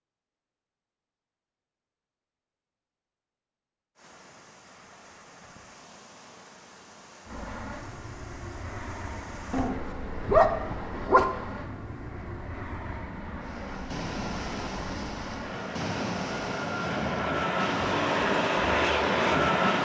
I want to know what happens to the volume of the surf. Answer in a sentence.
The loudness of the surf goes up.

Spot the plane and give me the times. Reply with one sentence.
You can hear the plane from 7.2 to 19.8 s.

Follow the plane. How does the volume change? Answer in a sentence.
The loudness of the plane goes up.